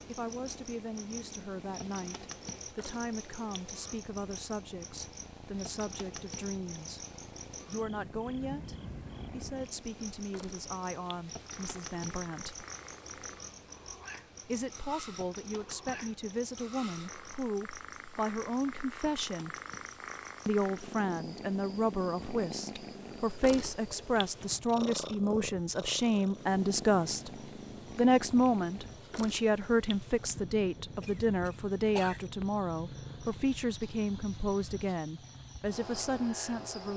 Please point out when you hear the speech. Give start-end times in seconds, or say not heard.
0.1-7.0, 7.7-12.7, 14.4-19.6, 20.4-27.3, 27.9-36.9.